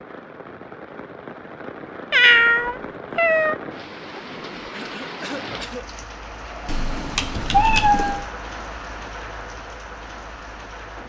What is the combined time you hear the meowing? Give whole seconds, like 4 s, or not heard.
3 s.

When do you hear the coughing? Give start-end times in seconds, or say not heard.
4.7-5.9.